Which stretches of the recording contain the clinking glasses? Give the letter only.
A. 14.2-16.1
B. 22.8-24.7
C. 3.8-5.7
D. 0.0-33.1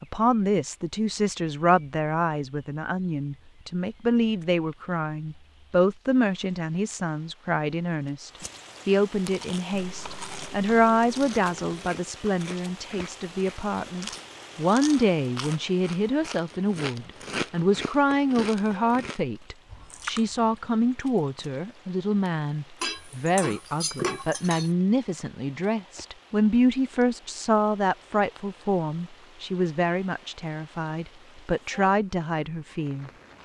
B.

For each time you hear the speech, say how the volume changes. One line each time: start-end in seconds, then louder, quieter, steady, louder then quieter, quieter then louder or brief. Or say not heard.
0.0-33.1 steady.